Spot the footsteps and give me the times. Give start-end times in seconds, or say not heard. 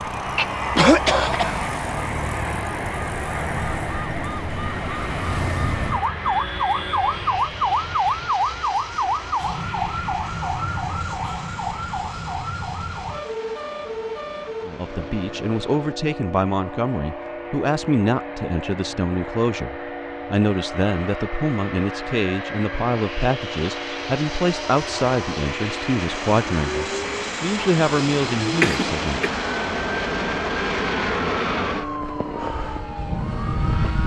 not heard.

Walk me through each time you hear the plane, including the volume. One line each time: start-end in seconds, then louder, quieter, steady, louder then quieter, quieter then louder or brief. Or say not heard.
0.0-34.0 quieter then louder.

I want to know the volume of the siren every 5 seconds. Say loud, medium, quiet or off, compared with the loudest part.
medium, loud, medium, medium, medium, medium, medium.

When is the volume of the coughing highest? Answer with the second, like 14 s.
1 s.